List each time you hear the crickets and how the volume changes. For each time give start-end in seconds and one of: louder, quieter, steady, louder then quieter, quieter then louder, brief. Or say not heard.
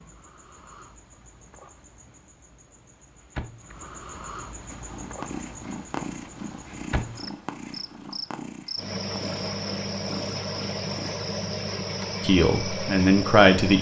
0.0-13.7 louder.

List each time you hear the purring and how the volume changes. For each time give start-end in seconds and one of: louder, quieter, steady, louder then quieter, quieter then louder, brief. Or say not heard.
4.7-11.1 quieter.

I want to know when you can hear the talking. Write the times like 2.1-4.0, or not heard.
12.2-13.7.